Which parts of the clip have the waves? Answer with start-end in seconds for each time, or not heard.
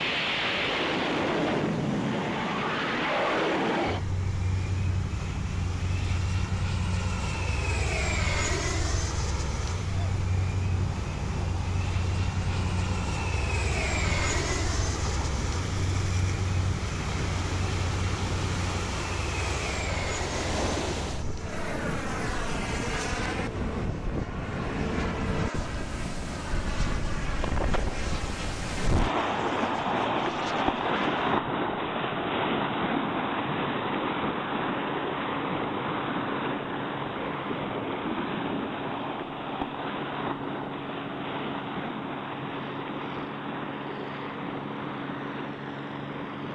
0.0-46.5.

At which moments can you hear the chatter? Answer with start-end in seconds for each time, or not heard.
not heard.